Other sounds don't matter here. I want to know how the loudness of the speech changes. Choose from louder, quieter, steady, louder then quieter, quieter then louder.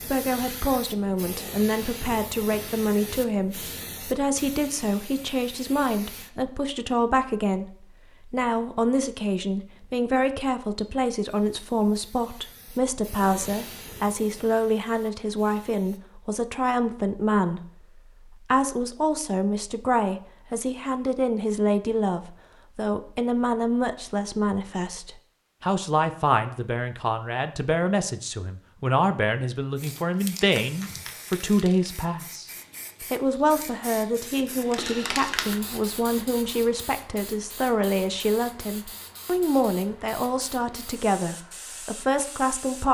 steady.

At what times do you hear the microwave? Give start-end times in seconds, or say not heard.
not heard.